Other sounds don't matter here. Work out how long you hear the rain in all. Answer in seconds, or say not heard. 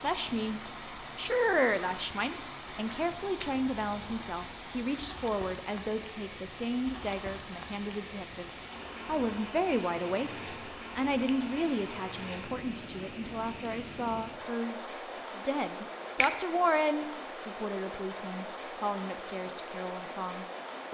21 s.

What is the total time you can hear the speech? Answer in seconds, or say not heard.
21 s.